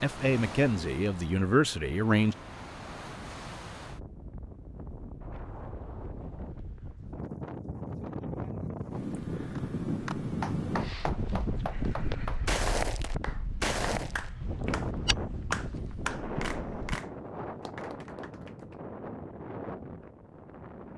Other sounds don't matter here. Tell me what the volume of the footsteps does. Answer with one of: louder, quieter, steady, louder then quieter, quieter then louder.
quieter.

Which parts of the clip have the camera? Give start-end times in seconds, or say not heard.
not heard.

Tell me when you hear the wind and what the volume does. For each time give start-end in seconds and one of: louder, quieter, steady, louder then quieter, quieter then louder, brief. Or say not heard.
0.0-20.9 louder then quieter.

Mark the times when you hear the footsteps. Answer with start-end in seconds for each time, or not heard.
11.9-17.0.